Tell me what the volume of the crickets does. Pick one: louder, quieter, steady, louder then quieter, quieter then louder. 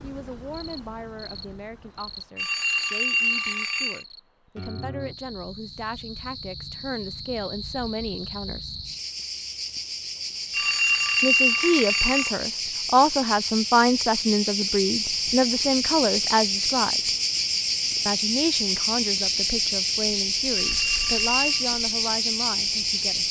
louder.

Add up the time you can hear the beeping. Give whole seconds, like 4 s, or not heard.
5 s.